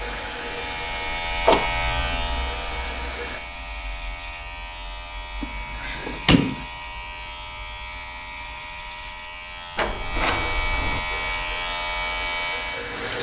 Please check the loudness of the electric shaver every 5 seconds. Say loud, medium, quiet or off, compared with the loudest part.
loud, medium, loud.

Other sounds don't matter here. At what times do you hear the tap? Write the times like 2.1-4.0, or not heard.
0.0-3.4, 11.1-13.1.